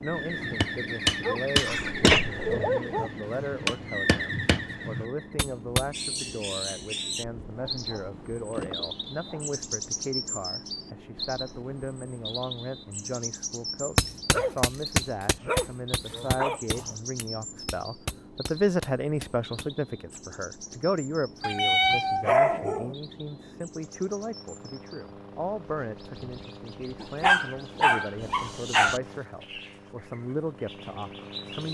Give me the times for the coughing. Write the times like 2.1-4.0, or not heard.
1.6-2.5.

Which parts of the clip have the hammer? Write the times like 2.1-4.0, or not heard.
0.1-5.9, 13.9-19.8.